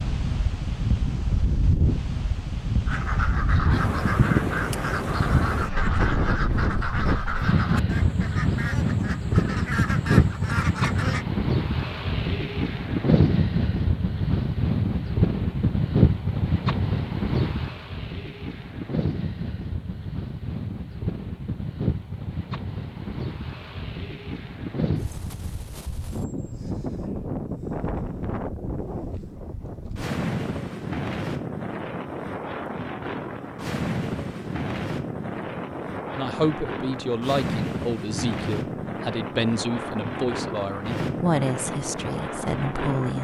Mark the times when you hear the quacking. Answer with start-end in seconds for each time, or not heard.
2.9-11.2.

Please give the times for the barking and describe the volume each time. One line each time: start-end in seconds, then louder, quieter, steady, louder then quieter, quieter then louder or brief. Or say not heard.
not heard.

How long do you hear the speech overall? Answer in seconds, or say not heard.
7 s.